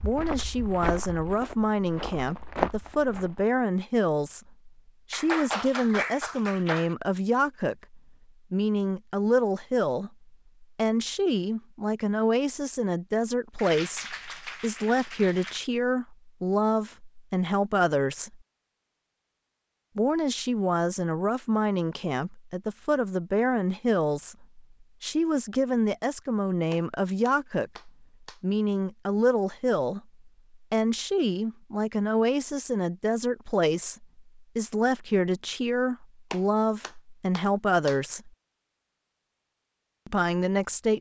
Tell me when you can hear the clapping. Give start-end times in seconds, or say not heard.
5.1-7.0, 13.6-15.6, 26.7-28.4, 36.3-38.0.